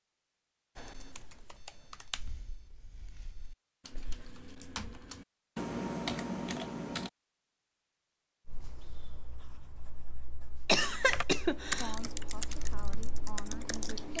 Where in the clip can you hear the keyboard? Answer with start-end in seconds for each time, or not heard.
0.8-7.1, 11.1-14.1.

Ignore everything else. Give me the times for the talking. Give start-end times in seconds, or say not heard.
11.7-14.1.